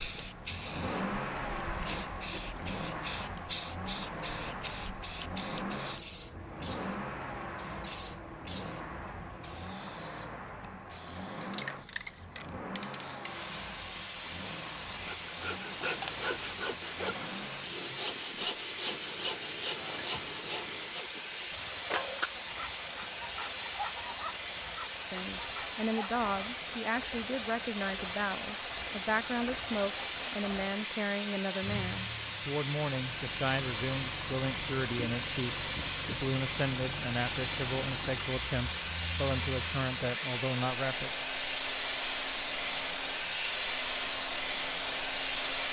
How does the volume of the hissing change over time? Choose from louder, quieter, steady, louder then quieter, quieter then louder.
louder.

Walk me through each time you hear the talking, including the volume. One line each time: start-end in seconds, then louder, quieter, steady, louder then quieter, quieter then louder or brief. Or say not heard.
25.1-41.1 steady.